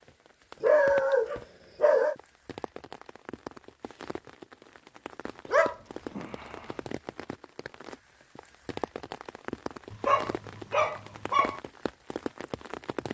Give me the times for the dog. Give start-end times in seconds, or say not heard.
0.6-2.1, 5.5-6.7, 9.9-11.6.